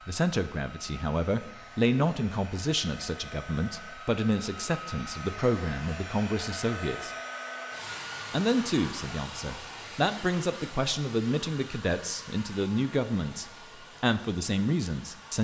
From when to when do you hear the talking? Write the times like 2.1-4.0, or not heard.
0.1-7.1, 8.3-15.4.